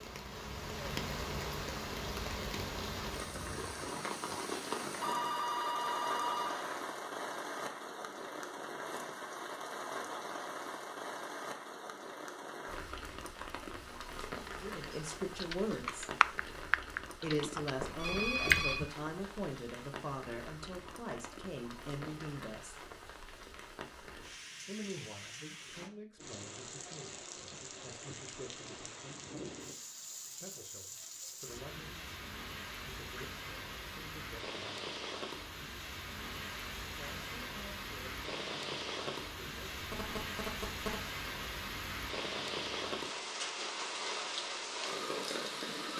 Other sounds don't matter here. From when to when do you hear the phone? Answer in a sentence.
The phone can be heard from 4.4 to 6.8 s, from 17.8 to 18.8 s and from 39.9 to 41.0 s.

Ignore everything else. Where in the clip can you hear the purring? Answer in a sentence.
You can't hear the purring here.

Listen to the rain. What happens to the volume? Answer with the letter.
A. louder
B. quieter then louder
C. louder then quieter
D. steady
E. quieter
B.